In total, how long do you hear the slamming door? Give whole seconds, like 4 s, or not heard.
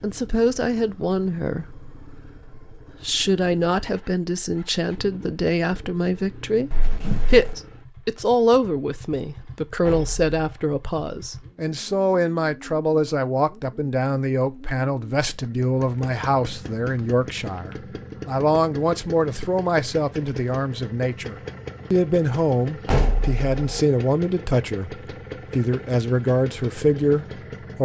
2 s.